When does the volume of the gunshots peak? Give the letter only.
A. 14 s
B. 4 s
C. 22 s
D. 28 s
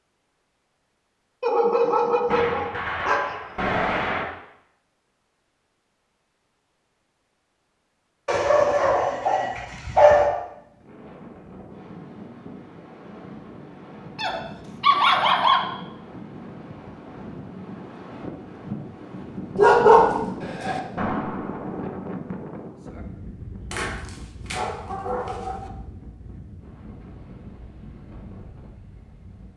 B.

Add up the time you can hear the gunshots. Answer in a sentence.
The gunshots can be heard for 3 seconds in total.